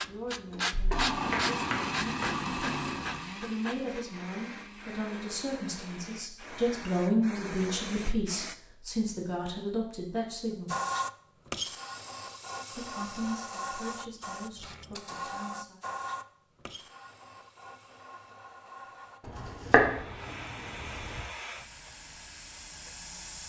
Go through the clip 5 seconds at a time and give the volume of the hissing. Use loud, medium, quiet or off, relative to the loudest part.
loud, medium, loud, medium, medium.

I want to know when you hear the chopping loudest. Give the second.
20 s.